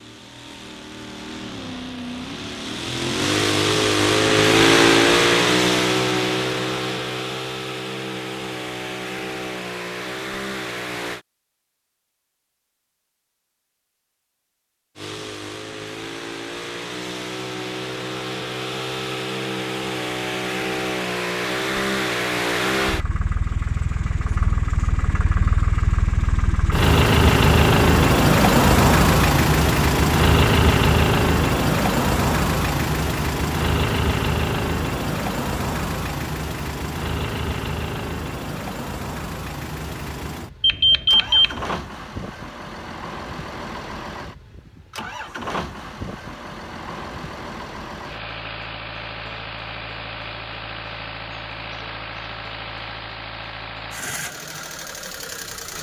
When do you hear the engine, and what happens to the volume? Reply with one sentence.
The engine can be heard from 0.0 to 11.2 s, getting louder then quieter; and from 14.9 to 55.7 s, getting louder then quieter.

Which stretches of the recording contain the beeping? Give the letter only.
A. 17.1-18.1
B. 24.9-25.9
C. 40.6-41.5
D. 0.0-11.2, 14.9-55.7
C.